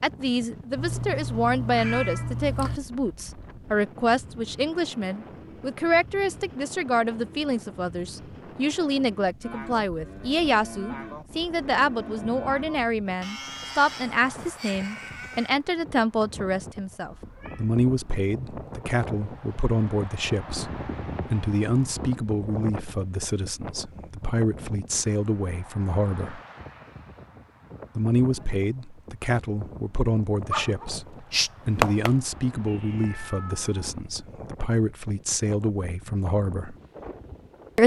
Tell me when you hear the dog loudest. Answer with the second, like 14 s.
32 s.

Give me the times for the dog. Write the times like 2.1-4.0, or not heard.
30.5-32.1.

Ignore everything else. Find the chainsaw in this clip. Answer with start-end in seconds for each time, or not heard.
not heard.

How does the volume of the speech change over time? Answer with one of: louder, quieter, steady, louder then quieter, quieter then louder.
steady.